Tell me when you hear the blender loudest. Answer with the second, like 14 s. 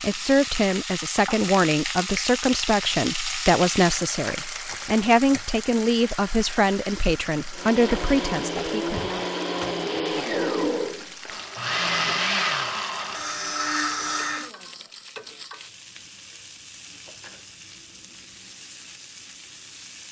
12 s.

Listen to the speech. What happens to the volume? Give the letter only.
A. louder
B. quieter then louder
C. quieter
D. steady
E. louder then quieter
D.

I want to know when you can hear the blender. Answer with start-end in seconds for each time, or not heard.
7.5-14.5.